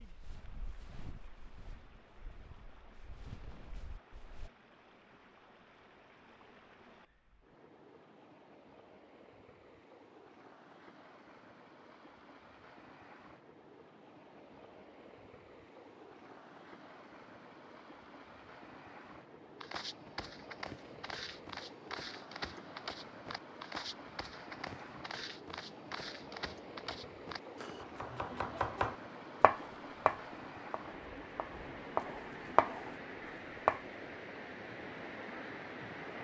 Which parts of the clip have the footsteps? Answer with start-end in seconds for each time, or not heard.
0.0-4.5, 19.6-27.9.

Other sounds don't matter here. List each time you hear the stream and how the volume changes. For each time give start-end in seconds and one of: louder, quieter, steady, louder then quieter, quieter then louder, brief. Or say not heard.
0.0-36.2 louder.